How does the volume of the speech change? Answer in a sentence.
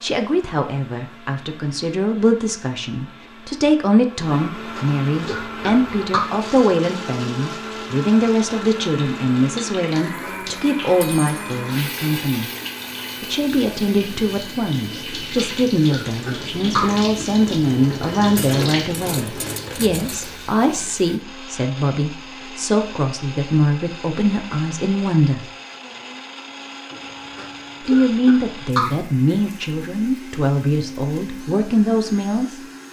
The volume of the speech stays about the same.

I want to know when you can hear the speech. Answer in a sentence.
You can hear the speech from 0.0 to 12.5 s, from 13.2 to 25.5 s and from 27.8 to 32.6 s.